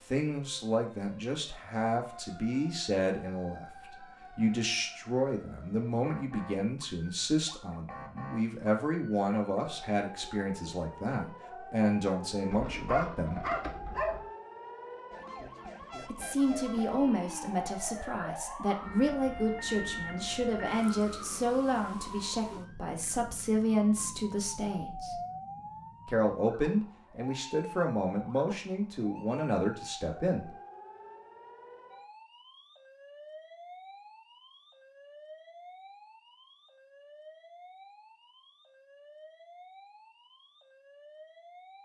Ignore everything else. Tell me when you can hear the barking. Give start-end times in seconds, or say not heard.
12.5-14.2.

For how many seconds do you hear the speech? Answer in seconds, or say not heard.
26 s.